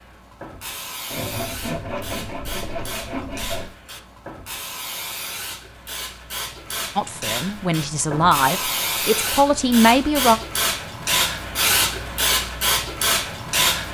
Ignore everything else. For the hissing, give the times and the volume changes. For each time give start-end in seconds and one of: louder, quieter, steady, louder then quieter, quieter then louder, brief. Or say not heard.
0.0-13.8 louder.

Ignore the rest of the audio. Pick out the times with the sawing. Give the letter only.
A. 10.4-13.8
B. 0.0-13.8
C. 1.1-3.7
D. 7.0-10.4
C.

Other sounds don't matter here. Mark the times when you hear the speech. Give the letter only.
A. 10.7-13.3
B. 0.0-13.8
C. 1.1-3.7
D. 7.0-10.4
D.